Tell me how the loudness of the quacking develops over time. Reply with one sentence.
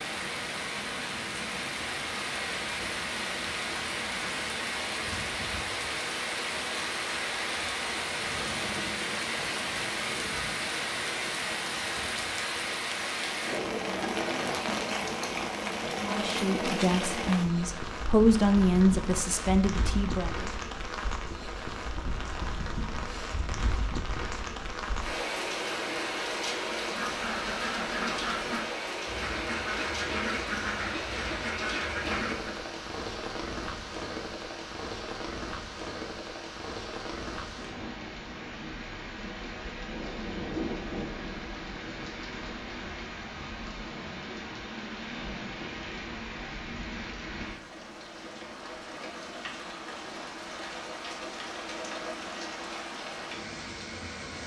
The loudness of the quacking stays about the same.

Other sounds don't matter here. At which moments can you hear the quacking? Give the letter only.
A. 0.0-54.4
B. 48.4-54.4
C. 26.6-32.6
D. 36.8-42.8
C.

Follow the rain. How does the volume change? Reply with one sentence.
The loudness of the rain goes down.